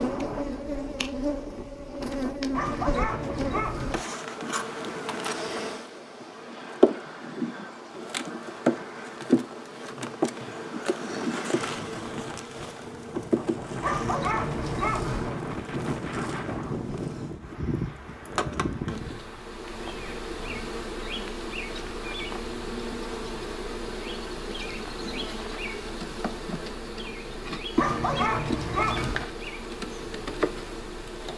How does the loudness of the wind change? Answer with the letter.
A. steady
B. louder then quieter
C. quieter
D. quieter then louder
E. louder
E.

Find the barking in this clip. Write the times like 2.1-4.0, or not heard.
2.5-4.0, 13.8-15.3, 27.8-29.2.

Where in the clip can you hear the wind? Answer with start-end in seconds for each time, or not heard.
0.0-20.6.